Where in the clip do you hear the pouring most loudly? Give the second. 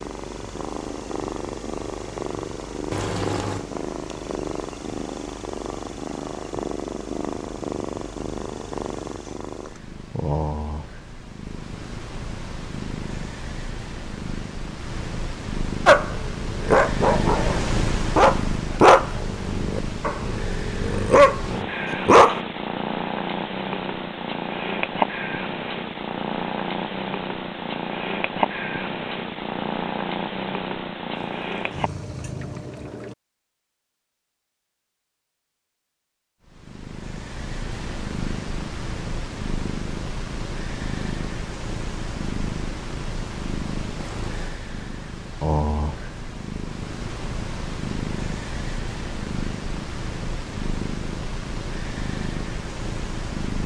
3 s.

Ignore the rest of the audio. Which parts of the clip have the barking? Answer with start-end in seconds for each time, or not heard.
15.8-22.4.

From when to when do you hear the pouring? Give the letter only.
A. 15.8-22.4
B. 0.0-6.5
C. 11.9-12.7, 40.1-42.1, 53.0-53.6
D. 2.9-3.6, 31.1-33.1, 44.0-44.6
D.